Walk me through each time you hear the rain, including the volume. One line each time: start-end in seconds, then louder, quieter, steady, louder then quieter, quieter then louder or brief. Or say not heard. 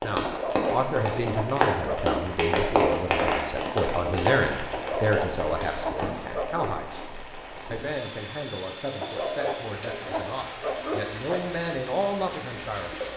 0.0-13.1 quieter.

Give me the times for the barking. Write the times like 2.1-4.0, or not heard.
0.2-2.2, 4.7-6.8, 9.0-11.4.